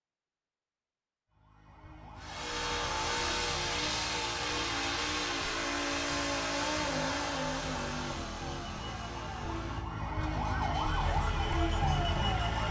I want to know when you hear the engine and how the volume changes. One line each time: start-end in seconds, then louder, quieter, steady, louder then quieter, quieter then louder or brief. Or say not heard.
2.1-12.6 quieter.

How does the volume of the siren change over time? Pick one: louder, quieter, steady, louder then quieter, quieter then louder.
louder.